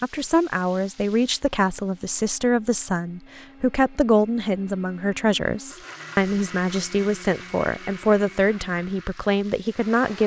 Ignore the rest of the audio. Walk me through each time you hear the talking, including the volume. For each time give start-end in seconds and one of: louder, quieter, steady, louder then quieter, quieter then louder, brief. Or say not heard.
0.0-10.2 steady.